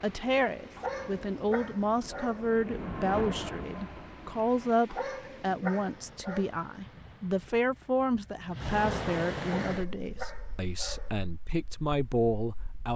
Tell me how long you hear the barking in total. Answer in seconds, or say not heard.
5 s.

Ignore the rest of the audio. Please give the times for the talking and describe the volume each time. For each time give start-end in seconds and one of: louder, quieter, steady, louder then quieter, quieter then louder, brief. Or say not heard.
0.0-12.9 steady.